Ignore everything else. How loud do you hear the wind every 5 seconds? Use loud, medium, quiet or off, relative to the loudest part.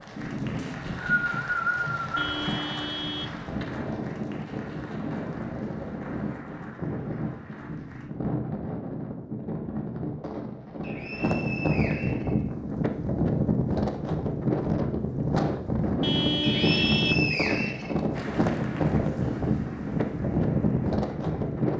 medium, medium, loud, loud, loud.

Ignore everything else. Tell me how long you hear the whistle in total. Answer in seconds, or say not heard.
5 s.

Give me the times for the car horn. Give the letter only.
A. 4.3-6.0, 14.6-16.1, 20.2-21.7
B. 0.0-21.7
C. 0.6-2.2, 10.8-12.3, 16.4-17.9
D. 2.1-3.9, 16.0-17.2
D.